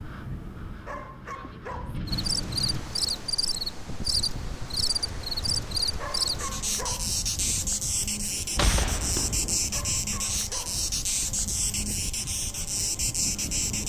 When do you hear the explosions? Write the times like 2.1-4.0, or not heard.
8.6-9.7.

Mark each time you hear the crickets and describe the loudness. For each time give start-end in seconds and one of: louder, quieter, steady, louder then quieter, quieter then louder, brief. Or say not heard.
2.0-13.8 steady.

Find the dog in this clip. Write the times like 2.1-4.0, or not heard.
0.8-2.0, 6.0-7.2, 9.7-10.8.